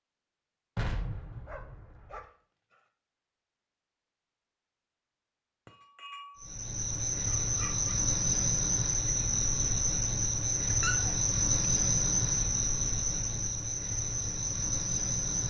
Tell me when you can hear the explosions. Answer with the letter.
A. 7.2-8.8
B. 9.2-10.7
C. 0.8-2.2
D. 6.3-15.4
C.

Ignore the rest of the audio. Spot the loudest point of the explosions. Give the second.
1 s.